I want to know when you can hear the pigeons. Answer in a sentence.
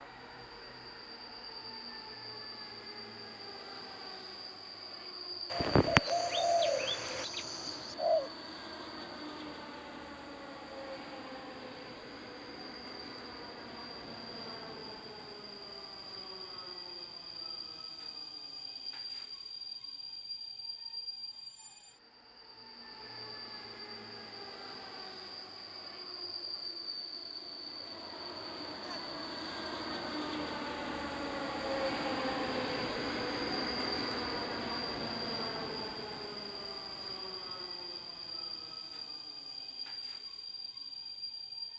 The pigeons can be heard from 5.5 to 8.3 s.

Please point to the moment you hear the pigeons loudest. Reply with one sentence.
The loudest moment of the pigeons is at 6 seconds.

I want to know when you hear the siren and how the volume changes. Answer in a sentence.
The siren can't be heard in this clip.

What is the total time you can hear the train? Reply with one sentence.
You can hear the train for 42 seconds altogether.